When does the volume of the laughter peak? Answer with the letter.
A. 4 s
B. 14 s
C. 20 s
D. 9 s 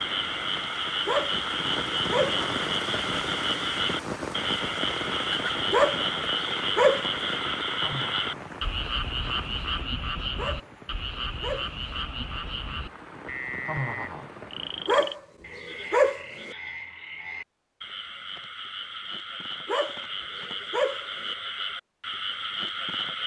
B.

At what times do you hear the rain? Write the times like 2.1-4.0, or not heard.
0.0-15.2.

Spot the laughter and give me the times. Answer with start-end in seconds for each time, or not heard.
7.8-8.4, 13.7-14.3.